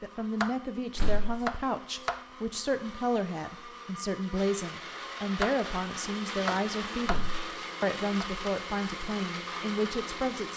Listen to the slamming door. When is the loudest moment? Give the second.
1 s.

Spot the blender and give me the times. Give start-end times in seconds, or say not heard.
0.0-10.5.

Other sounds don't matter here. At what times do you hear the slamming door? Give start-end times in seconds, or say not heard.
0.9-1.4, 7.0-7.5.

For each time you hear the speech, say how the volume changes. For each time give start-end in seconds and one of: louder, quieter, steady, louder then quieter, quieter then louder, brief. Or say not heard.
0.0-10.5 steady.